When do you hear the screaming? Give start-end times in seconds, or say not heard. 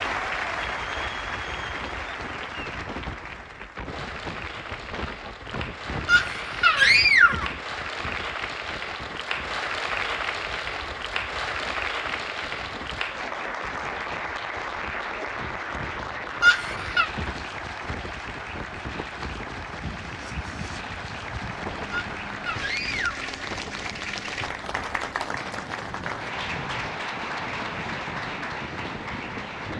6.0-7.5, 16.4-17.1, 21.9-23.3.